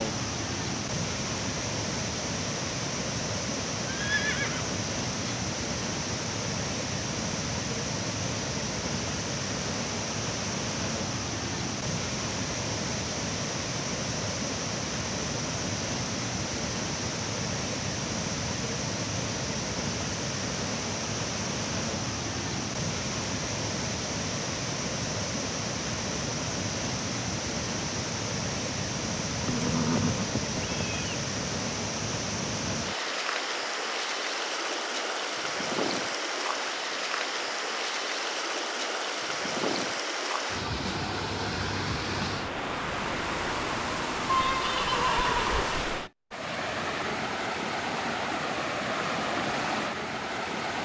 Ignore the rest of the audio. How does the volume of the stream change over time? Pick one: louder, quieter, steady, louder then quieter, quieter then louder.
steady.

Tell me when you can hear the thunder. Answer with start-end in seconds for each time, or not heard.
not heard.